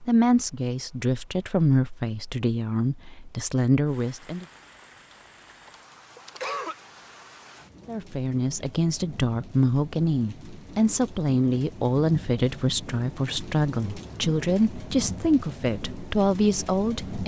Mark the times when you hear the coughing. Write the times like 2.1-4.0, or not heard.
5.7-6.8.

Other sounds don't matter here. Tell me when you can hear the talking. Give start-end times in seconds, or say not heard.
0.1-4.5, 7.8-17.2.